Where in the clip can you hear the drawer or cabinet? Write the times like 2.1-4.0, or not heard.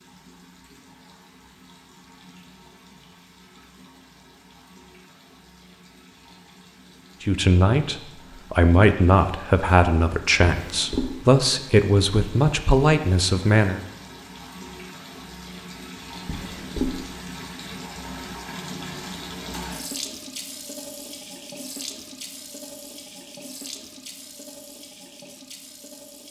10.4-11.2, 16.2-16.9.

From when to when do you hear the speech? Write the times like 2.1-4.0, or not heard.
7.2-13.8.